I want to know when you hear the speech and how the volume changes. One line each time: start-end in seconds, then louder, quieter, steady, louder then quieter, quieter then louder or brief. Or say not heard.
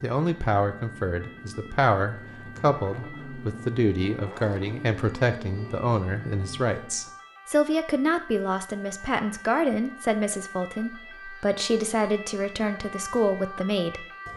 0.0-14.1 steady.